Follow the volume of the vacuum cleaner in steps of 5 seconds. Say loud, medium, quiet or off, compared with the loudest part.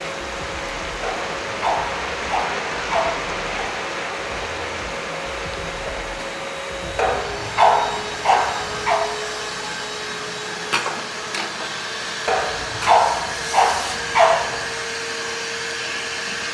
medium, loud, loud, loud.